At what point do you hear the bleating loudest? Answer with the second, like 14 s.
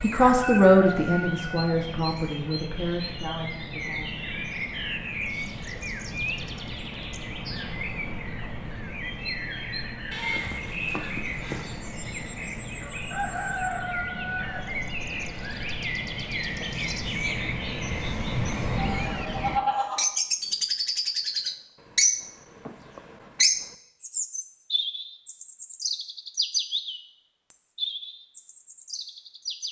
20 s.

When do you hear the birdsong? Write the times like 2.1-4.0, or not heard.
0.0-29.6.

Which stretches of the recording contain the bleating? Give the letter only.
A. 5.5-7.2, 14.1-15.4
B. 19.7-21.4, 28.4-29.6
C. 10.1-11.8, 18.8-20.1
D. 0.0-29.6
C.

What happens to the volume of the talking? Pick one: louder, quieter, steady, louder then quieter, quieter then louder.
quieter.